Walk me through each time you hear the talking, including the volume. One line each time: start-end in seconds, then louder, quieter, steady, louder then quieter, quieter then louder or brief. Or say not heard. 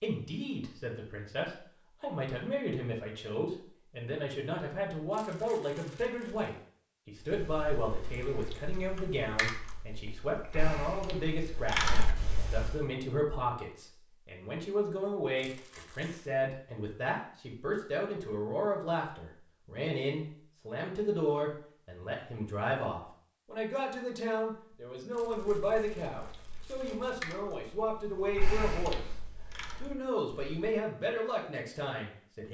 0.0-29.1 steady
29.8-32.4 brief.